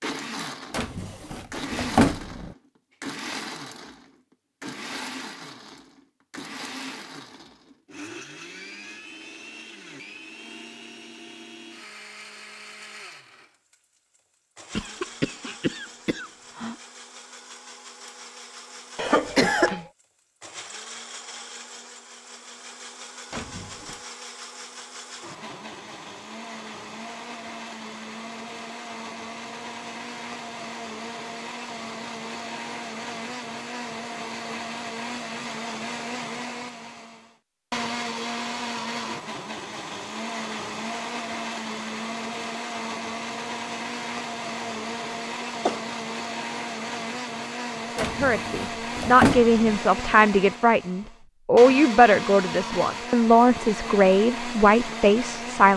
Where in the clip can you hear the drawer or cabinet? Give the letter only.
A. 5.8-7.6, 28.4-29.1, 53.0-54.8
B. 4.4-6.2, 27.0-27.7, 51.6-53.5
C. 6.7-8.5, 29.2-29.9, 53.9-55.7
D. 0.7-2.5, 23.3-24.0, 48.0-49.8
D.